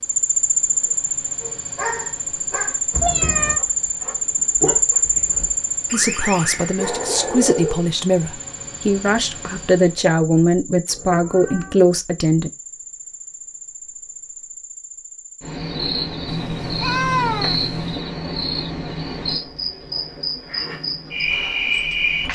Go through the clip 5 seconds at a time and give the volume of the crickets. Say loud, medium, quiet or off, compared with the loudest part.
loud, loud, quiet, medium, loud.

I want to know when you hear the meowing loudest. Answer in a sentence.
The loudest moment of the meowing is at 17 seconds.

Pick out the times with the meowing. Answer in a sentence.
The meowing can be heard from 2.9 to 3.6 s, from 10.8 to 11.9 s and from 16.2 to 18.1 s.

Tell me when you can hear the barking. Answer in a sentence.
You can hear the barking from 1.4 to 7.9 s.